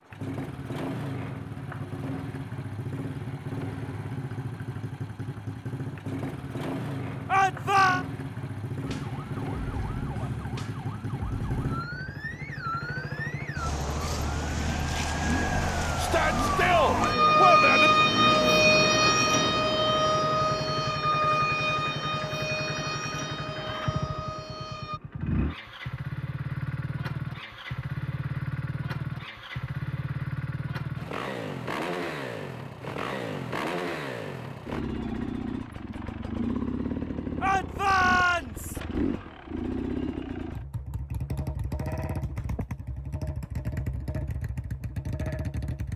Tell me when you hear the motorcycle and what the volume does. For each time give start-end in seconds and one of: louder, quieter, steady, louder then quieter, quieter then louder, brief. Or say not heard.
0.1-45.9 steady.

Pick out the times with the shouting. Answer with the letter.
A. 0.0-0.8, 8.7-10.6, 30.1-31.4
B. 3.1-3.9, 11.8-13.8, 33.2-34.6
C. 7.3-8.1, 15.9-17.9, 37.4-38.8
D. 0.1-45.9
C.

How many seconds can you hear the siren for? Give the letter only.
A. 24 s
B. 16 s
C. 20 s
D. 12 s
B.